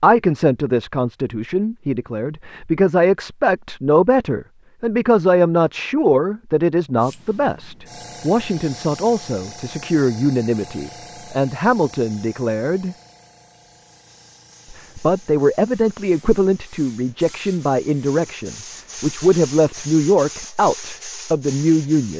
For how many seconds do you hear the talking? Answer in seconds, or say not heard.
20 s.